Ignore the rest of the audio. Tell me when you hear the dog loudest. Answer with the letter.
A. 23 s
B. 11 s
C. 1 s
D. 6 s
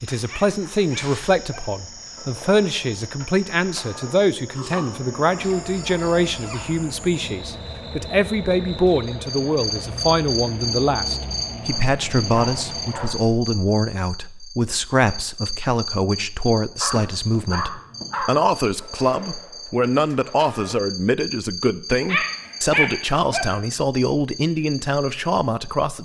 A.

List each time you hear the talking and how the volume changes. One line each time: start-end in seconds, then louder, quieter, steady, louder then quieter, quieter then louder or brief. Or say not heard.
0.0-26.0 steady.